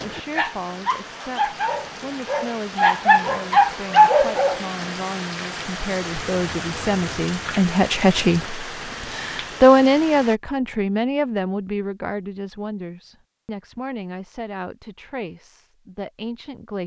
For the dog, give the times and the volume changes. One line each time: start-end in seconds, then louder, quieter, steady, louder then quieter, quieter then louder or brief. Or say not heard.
0.0-4.7 louder.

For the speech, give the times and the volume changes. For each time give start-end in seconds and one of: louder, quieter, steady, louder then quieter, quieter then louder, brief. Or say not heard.
0.0-16.8 louder then quieter.